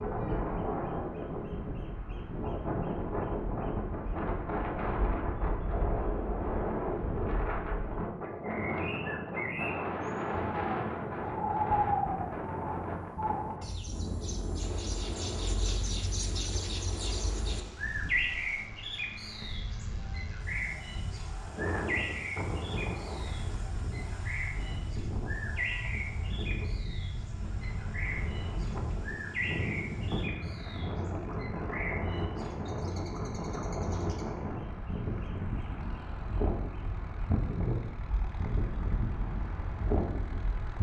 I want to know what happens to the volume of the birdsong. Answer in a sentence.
The loudness of the birdsong goes up, then down.